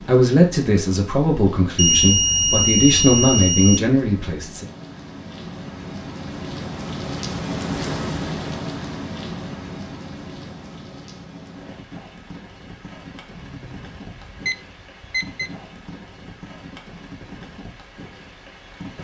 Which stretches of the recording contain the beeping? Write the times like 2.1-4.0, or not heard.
1.8-3.8, 13.3-15.5.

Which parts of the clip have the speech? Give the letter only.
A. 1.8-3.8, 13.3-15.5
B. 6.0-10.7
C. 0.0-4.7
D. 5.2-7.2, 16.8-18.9
C.